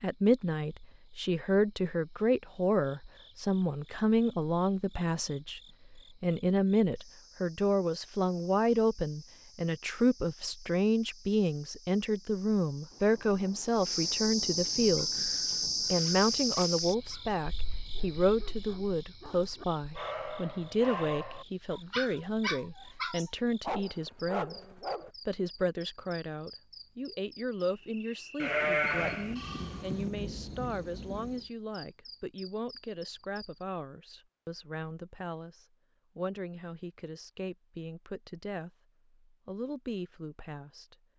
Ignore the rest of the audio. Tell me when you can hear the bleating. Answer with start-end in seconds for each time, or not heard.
28.4-30.1.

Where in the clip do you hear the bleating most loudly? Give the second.
29 s.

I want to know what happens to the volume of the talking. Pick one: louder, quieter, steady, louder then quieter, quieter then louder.
quieter.